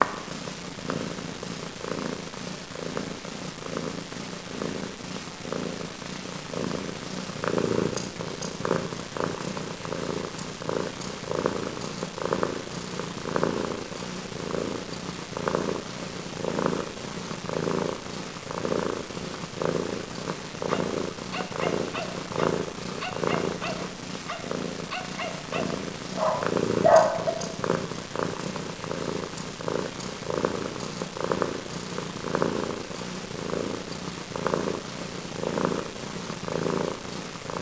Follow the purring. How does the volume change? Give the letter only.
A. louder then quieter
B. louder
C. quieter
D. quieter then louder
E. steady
E.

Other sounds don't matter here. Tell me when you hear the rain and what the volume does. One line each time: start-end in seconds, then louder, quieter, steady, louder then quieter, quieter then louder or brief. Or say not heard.
not heard.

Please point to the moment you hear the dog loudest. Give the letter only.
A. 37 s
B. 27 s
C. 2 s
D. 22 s
B.